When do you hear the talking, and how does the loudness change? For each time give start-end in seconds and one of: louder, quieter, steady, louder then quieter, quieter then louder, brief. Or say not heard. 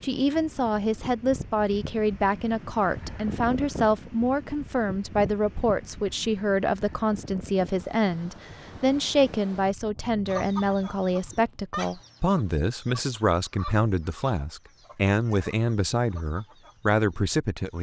0.0-17.7 steady.